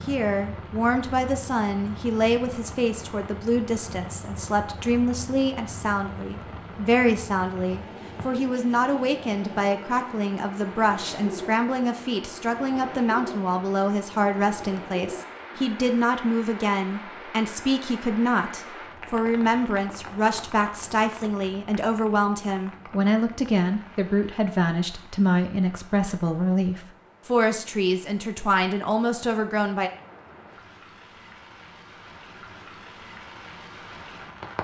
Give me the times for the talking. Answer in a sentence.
The talking can be heard from 0.1 to 29.9 s.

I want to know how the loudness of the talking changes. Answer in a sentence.
The loudness of the talking stays about the same.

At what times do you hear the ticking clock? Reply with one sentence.
You can't hear the ticking clock here.